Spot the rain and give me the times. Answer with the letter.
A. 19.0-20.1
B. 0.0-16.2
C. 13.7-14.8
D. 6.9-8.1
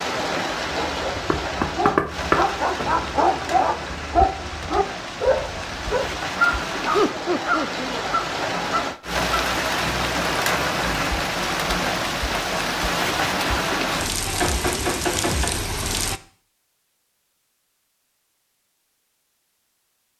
B.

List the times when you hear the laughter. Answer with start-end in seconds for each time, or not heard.
6.9-8.1.